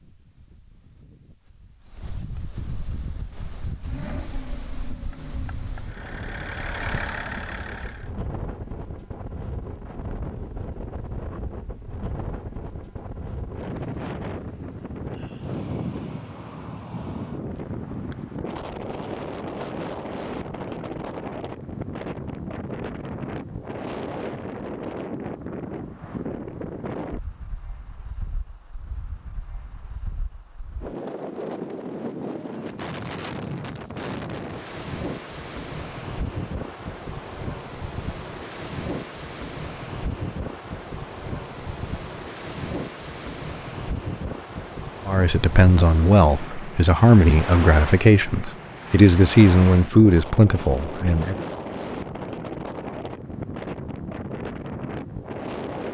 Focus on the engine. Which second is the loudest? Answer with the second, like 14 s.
7 s.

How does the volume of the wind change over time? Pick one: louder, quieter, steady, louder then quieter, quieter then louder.
louder.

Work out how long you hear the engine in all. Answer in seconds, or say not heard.
5 s.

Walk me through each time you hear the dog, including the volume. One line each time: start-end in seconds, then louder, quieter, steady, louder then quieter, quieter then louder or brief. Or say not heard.
not heard.